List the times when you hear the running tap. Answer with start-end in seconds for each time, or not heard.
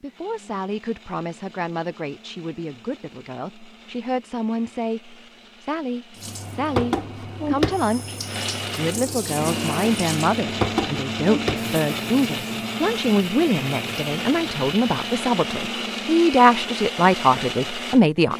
6.2-15.3.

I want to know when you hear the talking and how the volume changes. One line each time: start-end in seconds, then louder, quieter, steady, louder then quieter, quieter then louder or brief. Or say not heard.
0.0-18.3 louder.